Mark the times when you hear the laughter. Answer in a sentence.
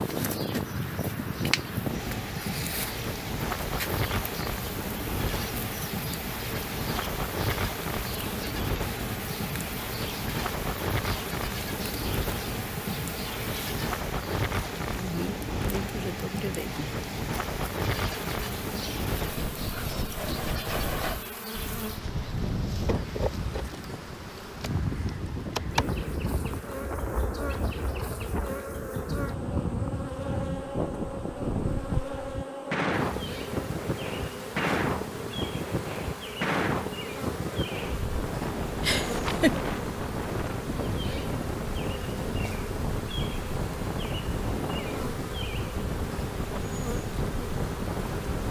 You can hear the laughter from 38.8 to 39.5 s.